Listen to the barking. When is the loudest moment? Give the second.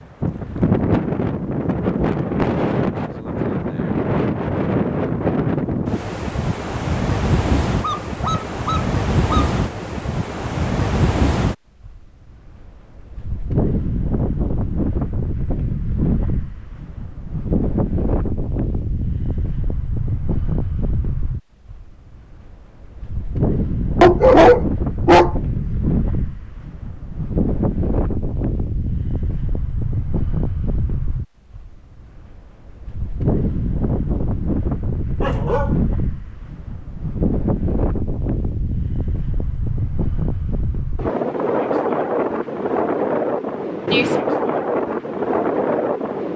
24 s.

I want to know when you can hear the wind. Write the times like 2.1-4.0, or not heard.
0.0-46.3.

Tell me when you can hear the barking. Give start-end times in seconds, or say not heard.
7.8-9.6, 24.0-25.8, 35.2-35.8.